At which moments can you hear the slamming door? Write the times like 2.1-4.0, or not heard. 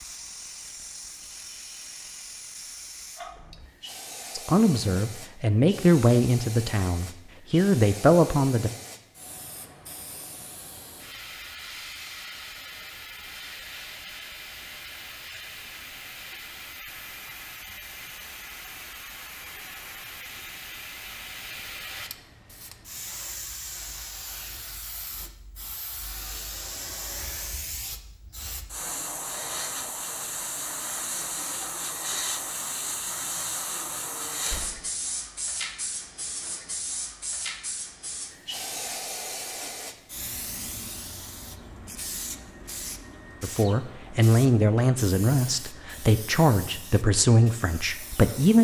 34.5-34.9.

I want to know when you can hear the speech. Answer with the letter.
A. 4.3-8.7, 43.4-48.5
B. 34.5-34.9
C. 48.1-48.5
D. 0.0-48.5
A.